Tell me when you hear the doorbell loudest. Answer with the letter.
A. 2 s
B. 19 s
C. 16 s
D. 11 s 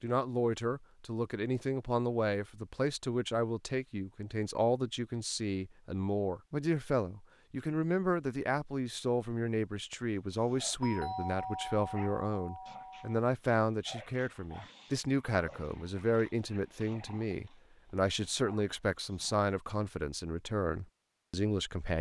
D.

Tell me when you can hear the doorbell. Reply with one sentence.
You can hear the doorbell from 10.8 to 13.2 s.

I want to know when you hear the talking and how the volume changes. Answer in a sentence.
You can hear the talking from 0.0 to 21.9 s, at a steady volume.